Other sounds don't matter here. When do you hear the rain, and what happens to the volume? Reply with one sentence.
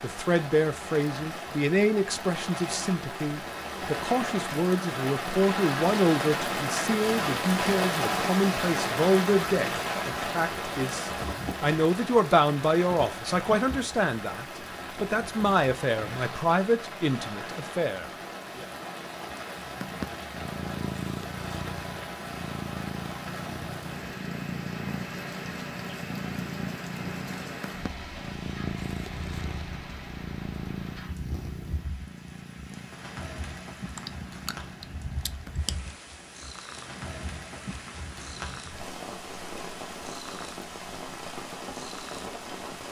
The rain can be heard from 0.0 to 42.8 s, getting quieter.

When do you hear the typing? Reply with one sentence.
The typing can be heard from 34.0 to 35.8 s.